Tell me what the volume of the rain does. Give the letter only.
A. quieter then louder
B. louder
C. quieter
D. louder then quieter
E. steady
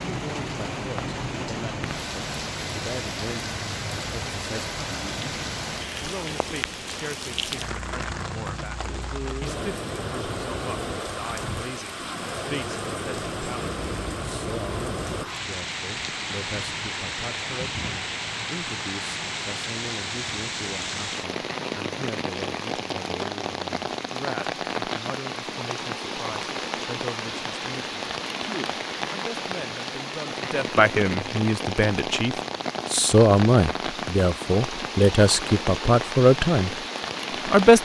E.